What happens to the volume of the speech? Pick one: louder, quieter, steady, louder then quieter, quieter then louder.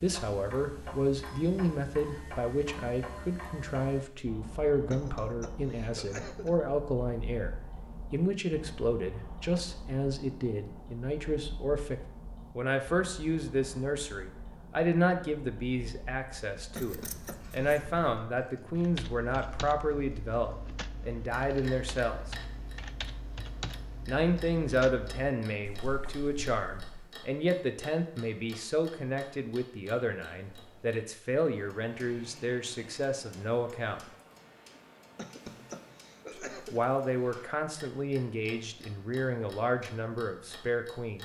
steady.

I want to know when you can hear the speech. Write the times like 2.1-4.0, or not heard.
0.0-22.4, 24.1-34.0, 36.3-41.1.